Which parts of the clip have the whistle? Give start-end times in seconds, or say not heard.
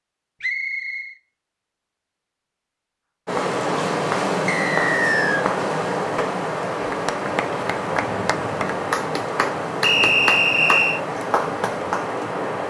0.4-1.1, 4.5-5.5, 9.8-11.0.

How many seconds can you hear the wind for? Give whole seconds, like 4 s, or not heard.
9 s.